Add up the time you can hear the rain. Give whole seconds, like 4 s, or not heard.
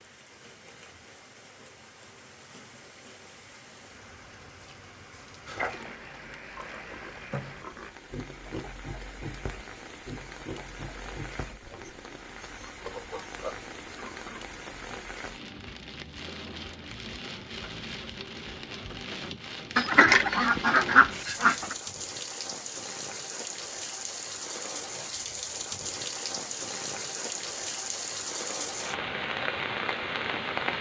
31 s.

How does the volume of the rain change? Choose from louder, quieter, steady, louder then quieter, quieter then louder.
louder.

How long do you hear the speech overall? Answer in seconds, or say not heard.
not heard.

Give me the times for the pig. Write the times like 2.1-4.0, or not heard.
5.5-14.4.